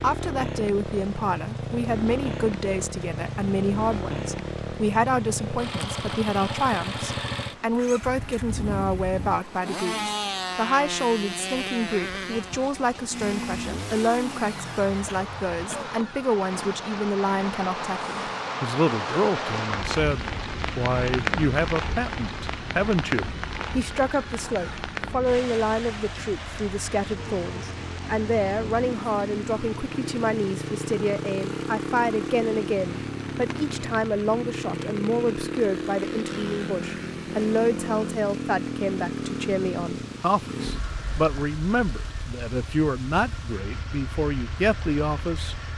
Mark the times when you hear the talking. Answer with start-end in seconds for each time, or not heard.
0.0-45.5.